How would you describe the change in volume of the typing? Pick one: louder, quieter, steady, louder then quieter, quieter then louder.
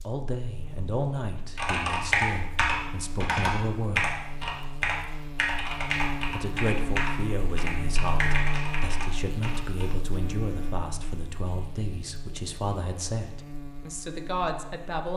quieter.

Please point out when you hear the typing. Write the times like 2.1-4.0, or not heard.
1.6-9.9.